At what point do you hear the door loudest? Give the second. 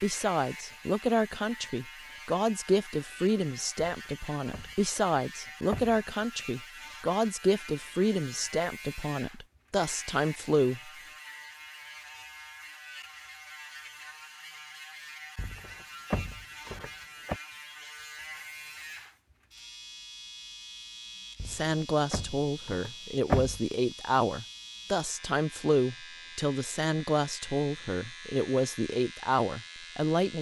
23 s.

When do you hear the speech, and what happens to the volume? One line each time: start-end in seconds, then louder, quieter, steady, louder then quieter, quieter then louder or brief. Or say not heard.
0.0-10.9 steady
21.4-30.3 steady.